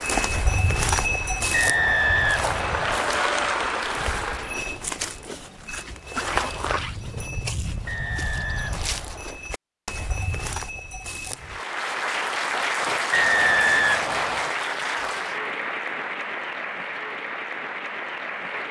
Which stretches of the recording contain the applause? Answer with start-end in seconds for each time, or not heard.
0.0-4.8, 11.3-18.6.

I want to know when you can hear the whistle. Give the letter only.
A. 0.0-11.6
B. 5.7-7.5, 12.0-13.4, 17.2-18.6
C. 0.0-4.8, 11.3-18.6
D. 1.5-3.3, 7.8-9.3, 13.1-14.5
D.